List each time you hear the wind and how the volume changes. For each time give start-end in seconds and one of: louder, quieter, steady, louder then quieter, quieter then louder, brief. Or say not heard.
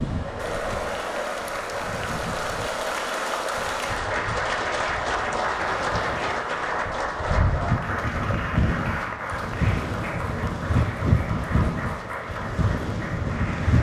0.0-13.7 louder.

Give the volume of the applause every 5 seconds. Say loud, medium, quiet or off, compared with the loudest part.
loud, loud, medium.